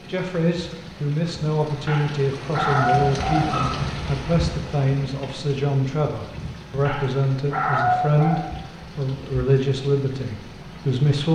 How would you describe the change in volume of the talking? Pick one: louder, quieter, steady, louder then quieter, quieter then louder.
steady.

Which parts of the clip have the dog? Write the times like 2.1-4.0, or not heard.
1.9-3.8, 6.8-8.4.